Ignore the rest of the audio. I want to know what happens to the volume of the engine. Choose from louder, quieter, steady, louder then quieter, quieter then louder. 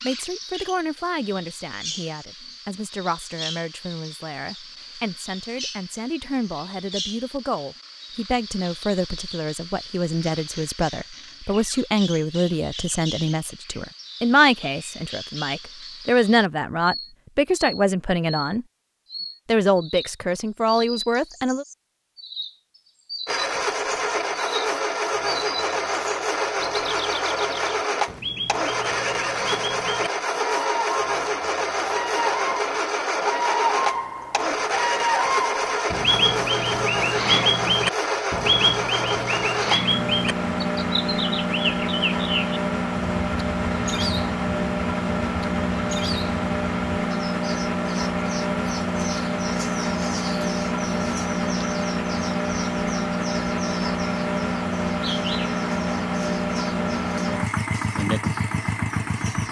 steady.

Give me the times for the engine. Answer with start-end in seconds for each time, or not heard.
23.2-59.4.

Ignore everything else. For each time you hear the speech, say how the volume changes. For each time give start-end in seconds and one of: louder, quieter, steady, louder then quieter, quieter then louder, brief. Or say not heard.
0.0-18.6 louder
19.4-21.6 brief.